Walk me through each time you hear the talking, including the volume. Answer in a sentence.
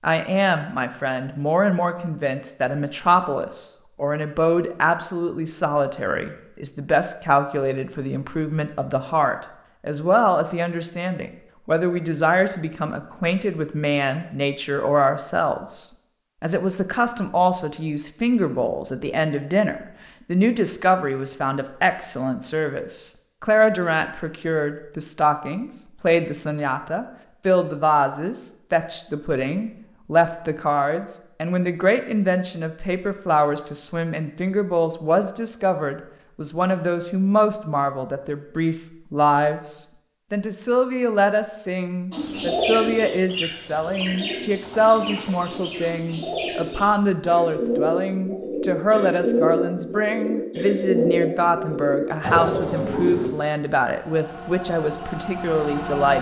You can hear the talking from 0.0 to 56.1 s, at a steady volume.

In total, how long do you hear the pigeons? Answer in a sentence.
You can hear the pigeons for 11 seconds altogether.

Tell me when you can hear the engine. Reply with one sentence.
You can hear the engine from 53.9 to 56.1 s.